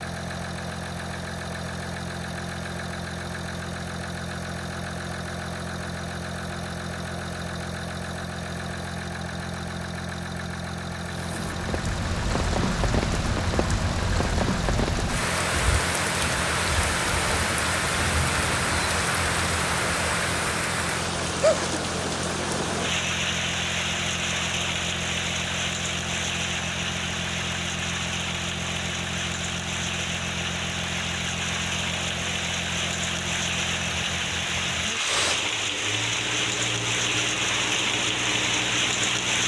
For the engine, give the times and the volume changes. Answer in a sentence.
You can hear the engine from 0.0 to 39.4 s, at a steady volume.